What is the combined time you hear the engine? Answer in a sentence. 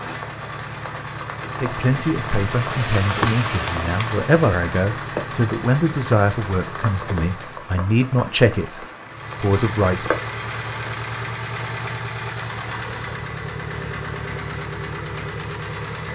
The engine can be heard for 15 seconds in total.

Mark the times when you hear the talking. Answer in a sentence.
The talking can be heard from 1.6 to 10.1 s.